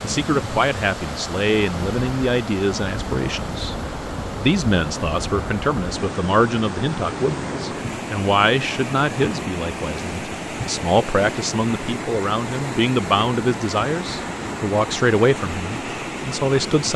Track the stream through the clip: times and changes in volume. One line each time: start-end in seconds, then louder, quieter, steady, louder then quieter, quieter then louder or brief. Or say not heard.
0.0-16.9 steady.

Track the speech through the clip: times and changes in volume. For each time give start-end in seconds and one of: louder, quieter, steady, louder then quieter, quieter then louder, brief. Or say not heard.
0.0-16.9 steady.